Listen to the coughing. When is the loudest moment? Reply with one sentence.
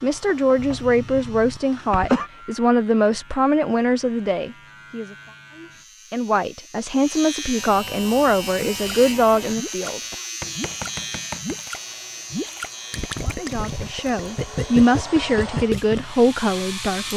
The loudest moment of the coughing is at 2 seconds.